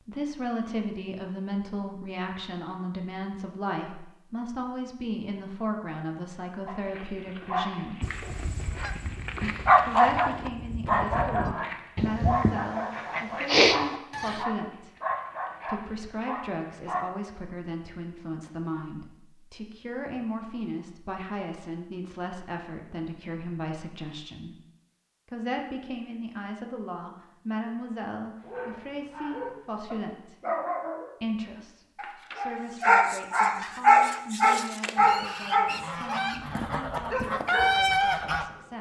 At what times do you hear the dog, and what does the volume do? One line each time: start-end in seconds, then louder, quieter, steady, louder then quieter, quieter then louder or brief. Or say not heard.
6.7-17.1 louder then quieter
28.4-38.6 louder then quieter.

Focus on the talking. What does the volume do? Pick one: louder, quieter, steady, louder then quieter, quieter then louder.
quieter.